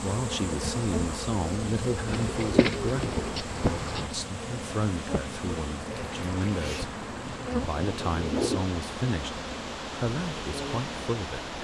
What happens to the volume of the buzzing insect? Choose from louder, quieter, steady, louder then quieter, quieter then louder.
quieter.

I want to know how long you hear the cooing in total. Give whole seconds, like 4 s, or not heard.
5 s.